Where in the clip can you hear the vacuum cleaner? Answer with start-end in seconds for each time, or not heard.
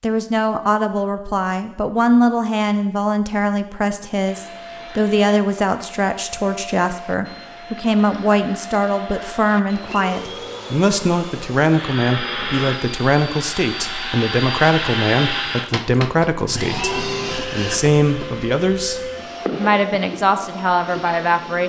4.2-21.6.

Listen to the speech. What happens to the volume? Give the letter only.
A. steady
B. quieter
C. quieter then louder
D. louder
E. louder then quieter
A.